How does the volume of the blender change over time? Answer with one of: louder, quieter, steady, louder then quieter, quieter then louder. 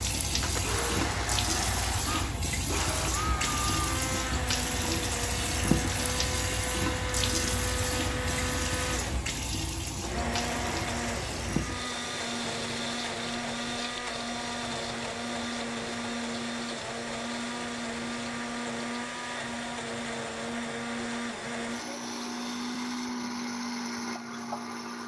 steady.